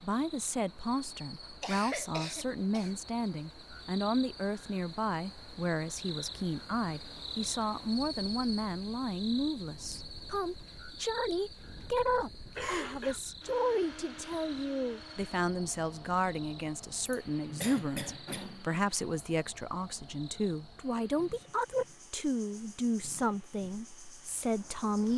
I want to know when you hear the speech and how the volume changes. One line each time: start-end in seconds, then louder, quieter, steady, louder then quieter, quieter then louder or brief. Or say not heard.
0.0-25.1 steady.